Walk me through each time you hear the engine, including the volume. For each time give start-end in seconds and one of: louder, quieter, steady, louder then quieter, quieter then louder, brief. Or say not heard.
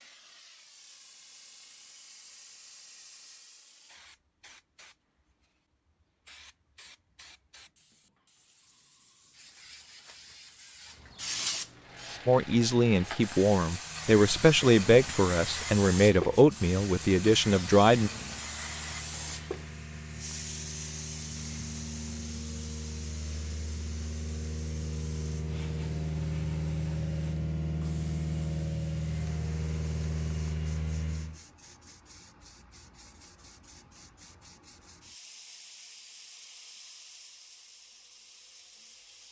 11.8-31.4 louder.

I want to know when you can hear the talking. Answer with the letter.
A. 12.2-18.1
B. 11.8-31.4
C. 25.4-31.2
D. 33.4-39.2
A.